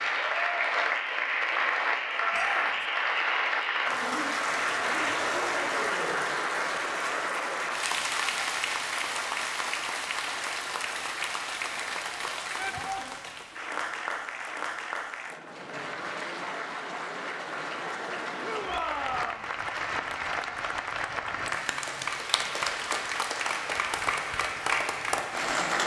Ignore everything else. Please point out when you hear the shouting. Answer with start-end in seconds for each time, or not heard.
2.3-2.9, 12.6-13.2, 18.4-19.4.